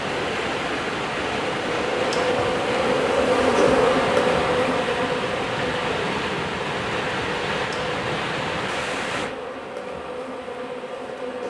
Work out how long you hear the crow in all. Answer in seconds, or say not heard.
not heard.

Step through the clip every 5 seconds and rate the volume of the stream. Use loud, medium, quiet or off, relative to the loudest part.
loud, loud, quiet.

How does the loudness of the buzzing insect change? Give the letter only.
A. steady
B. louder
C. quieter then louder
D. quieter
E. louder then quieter
E.